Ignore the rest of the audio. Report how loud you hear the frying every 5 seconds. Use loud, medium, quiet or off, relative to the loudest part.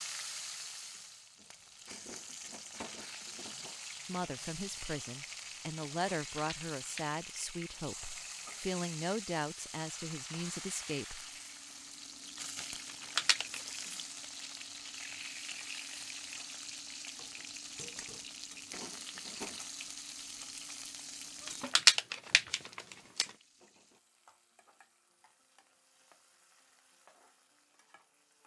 loud, loud, loud, loud, medium, quiet.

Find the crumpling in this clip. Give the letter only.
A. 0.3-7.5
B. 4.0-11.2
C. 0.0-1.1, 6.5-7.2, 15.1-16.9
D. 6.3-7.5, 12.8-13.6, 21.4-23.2
D.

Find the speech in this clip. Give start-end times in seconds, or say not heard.
4.0-11.2.